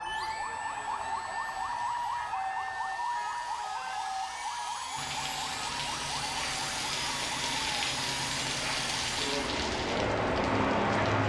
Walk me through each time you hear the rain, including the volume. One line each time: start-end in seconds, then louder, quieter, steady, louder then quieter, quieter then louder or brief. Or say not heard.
5.0-11.2 louder.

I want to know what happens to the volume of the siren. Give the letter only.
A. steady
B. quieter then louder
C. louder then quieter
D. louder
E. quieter
E.